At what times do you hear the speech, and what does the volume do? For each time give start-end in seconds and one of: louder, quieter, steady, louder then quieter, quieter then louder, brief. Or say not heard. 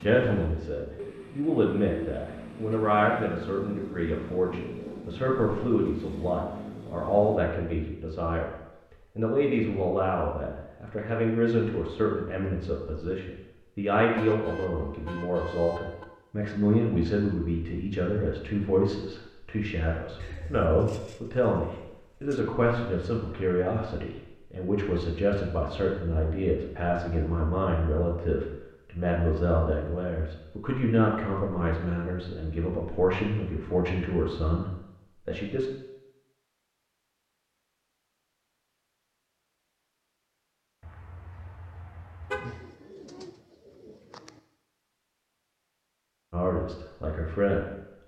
0.0-35.7 steady
46.3-47.7 brief.